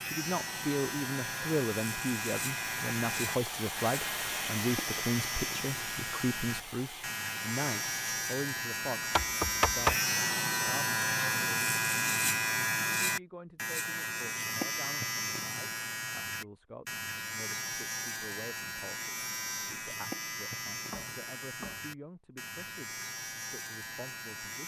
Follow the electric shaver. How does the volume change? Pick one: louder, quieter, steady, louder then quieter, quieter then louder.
louder then quieter.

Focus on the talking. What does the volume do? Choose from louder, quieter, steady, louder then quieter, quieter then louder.
quieter.